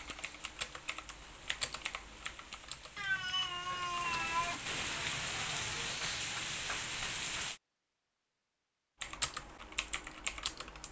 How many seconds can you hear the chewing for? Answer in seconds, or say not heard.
not heard.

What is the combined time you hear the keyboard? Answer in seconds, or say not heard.
6 s.